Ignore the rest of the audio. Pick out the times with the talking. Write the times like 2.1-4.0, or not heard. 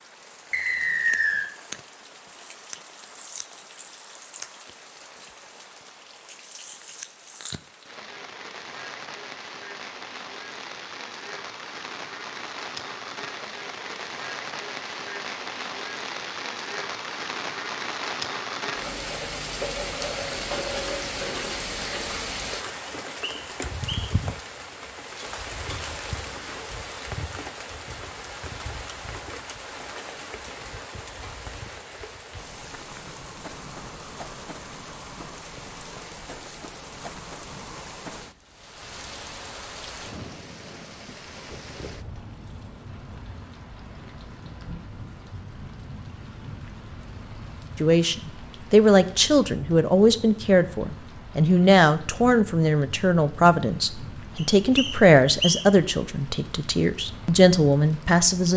47.8-58.5.